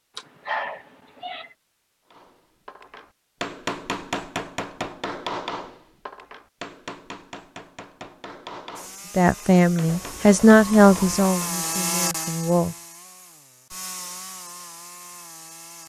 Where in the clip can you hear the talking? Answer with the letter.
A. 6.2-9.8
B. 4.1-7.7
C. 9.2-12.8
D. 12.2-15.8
C.